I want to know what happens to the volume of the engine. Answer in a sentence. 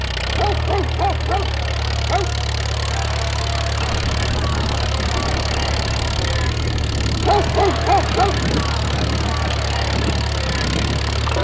The volume of the engine stays about the same.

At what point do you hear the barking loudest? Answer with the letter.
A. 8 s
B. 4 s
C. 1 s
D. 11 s
A.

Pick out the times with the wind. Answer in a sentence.
You can hear the wind from 3.8 to 11.3 s.